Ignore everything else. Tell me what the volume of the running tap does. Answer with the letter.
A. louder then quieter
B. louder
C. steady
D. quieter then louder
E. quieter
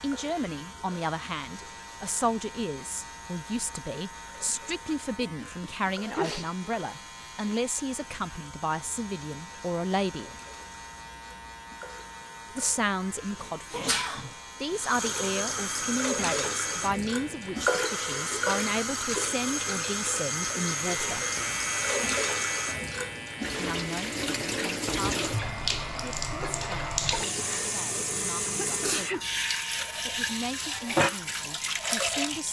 B.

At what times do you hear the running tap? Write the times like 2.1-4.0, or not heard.
0.0-32.4.